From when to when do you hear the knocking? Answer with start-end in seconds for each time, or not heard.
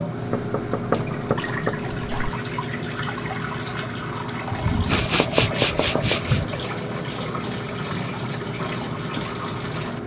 0.3-2.3, 5.2-6.2.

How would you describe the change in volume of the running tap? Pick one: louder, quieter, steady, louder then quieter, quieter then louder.
steady.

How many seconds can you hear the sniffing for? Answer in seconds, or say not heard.
2 s.